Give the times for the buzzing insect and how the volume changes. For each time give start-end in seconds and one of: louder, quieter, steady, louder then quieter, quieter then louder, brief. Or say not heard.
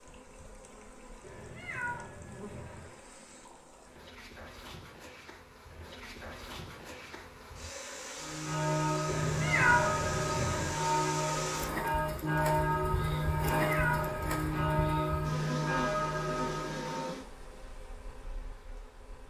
0.0-19.2 louder.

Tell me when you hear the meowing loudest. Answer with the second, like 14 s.
10 s.